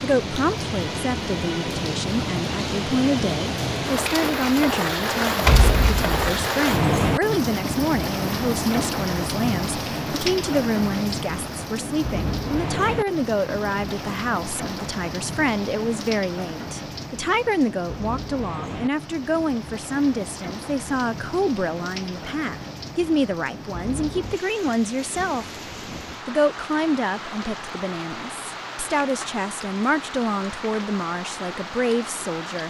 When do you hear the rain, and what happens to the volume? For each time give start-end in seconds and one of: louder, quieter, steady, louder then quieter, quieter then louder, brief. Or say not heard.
0.0-32.6 quieter.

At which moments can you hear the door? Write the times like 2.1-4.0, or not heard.
5.4-6.5.